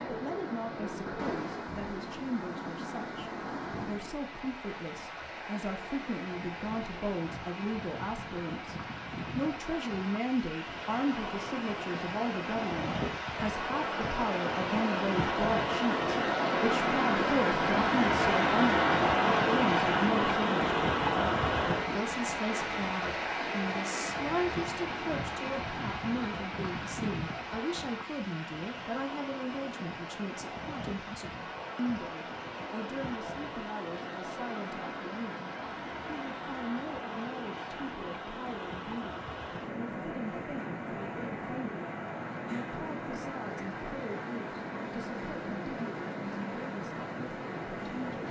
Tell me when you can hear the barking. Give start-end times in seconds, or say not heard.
not heard.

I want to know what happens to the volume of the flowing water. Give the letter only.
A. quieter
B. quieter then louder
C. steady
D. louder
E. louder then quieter
E.